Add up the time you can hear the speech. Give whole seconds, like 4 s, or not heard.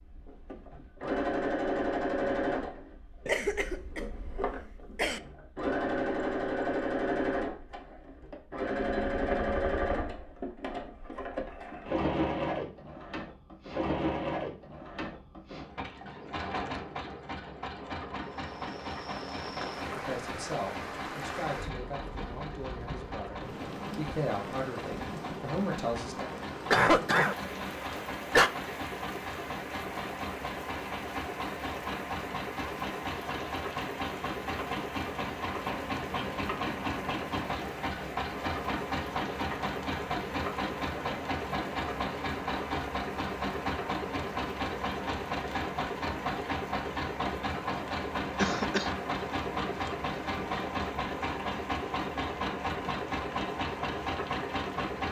6 s.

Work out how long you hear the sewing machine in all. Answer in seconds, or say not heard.
55 s.